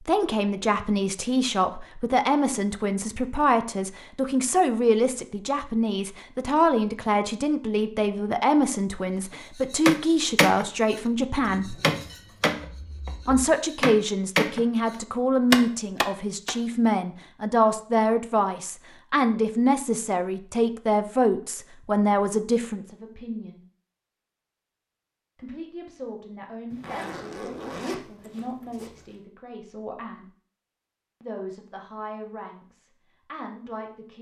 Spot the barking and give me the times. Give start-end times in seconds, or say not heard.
not heard.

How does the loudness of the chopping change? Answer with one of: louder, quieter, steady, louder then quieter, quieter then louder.
quieter then louder.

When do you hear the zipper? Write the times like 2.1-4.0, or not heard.
11.5-13.4, 26.7-28.9.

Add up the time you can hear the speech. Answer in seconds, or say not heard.
30 s.